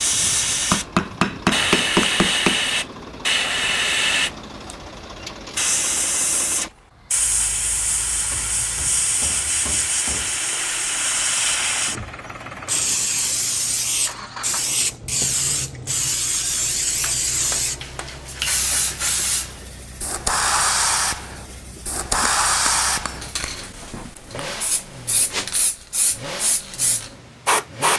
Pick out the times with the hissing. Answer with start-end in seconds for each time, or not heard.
0.0-27.9.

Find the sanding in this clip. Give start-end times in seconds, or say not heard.
not heard.